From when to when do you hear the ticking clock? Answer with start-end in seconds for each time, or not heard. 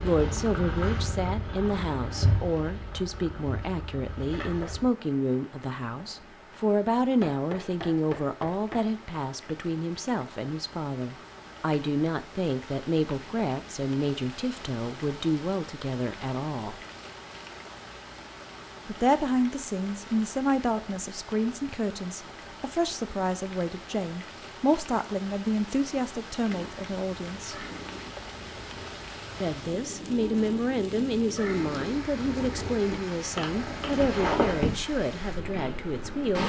not heard.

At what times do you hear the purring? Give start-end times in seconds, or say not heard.
0.0-4.8, 26.4-36.4.